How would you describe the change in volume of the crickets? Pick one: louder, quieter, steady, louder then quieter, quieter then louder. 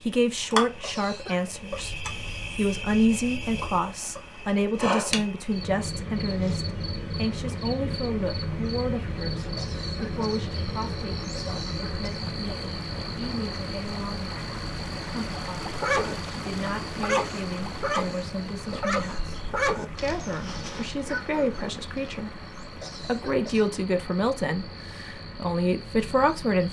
quieter.